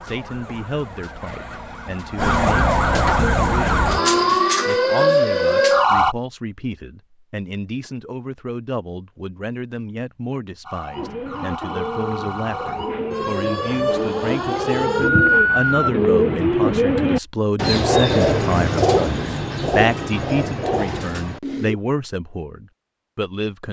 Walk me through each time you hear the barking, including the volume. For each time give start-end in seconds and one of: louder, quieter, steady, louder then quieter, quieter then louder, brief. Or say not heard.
not heard.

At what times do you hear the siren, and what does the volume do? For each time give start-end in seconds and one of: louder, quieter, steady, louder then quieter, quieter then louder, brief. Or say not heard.
0.0-6.2 louder
10.6-15.9 louder.